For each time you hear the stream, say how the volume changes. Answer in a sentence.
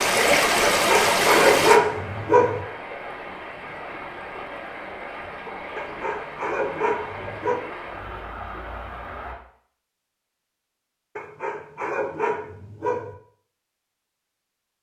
You can hear the stream from 0.0 to 9.3 s, getting quieter.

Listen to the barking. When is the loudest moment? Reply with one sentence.
The loudest moment of the barking is at 2 seconds.